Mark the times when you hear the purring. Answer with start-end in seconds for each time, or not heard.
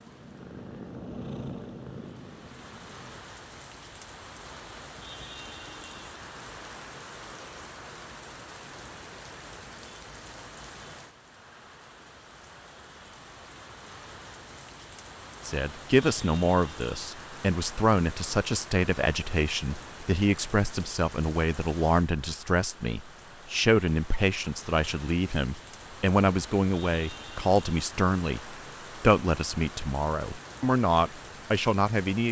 0.0-3.2.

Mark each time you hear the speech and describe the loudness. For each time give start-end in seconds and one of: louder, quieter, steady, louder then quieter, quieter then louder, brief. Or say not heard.
15.4-32.2 steady.